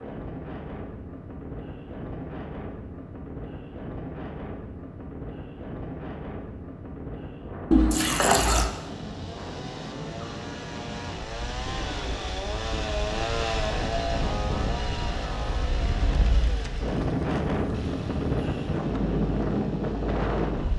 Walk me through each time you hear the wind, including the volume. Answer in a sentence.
You can hear the wind from 0.0 to 20.7 s, getting louder.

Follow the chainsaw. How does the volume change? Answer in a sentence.
The volume of the chainsaw goes up, then down.